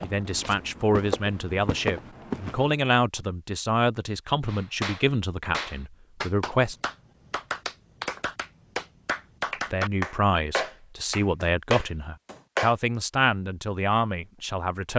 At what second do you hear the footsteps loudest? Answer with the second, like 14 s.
2 s.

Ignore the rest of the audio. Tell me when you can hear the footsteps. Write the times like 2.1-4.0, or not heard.
0.0-2.8.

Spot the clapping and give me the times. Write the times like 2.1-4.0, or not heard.
4.5-12.8.